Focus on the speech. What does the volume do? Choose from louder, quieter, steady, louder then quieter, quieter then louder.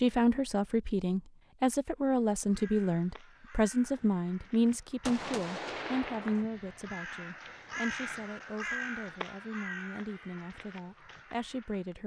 quieter.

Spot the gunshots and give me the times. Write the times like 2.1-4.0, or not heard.
5.0-6.5.